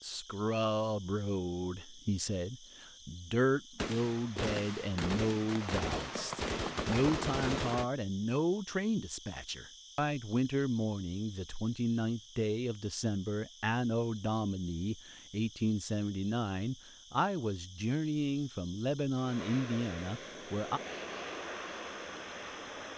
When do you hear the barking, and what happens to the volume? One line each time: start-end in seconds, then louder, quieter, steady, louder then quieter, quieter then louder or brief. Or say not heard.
not heard.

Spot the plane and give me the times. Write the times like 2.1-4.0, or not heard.
19.1-22.9.